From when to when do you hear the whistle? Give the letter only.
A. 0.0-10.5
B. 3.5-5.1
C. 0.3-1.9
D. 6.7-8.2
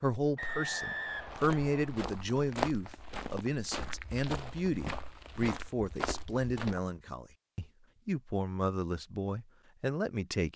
C.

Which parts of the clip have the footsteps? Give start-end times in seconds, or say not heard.
1.1-7.0.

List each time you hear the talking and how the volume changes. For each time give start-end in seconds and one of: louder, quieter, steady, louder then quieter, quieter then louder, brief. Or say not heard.
0.0-10.5 steady.